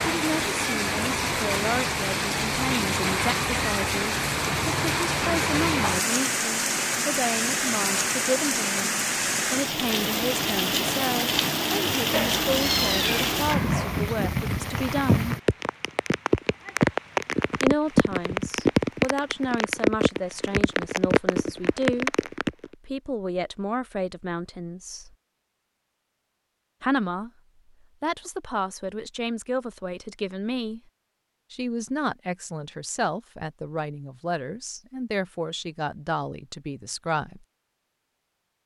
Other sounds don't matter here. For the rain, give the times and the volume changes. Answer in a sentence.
You can hear the rain from 0.0 to 22.7 s, at a steady volume.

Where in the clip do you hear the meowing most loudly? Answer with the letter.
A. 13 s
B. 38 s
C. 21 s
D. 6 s
A.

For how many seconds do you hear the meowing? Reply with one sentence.
The meowing can be heard for 2 seconds in total.